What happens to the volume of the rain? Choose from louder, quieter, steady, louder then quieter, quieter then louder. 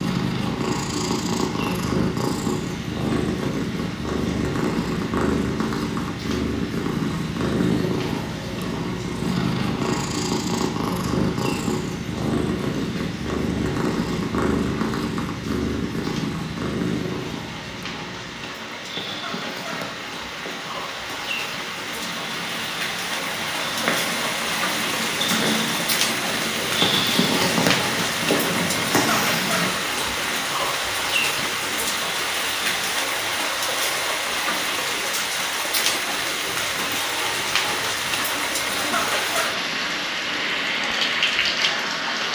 louder.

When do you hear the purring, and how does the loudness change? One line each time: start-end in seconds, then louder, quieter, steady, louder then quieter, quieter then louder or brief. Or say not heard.
0.0-29.7 quieter then louder.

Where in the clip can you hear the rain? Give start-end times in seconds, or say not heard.
0.0-42.3.